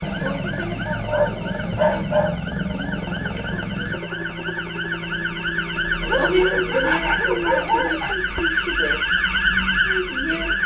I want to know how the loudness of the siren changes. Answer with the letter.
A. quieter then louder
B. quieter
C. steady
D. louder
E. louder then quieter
D.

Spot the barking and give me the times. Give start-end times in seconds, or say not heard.
1.1-2.4, 6.0-8.2.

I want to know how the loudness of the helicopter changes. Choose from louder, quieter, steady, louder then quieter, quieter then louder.
quieter.